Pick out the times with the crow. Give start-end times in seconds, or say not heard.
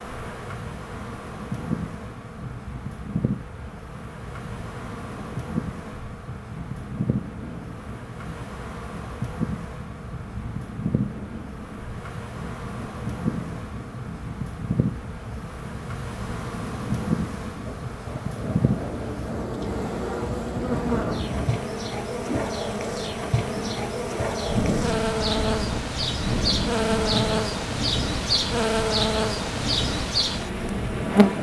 not heard.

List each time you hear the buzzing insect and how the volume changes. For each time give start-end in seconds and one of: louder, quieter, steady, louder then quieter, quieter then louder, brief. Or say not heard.
0.0-31.3 louder.